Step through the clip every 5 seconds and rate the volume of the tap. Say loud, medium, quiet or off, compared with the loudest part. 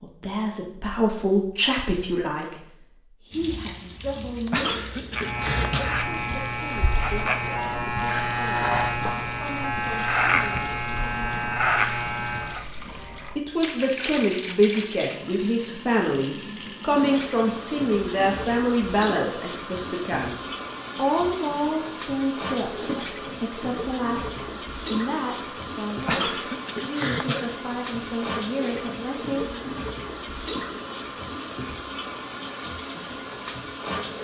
medium, medium, loud, loud, loud, loud, loud.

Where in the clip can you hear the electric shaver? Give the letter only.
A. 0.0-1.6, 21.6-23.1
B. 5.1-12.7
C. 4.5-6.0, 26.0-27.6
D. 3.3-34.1
B.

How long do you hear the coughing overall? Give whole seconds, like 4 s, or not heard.
3 s.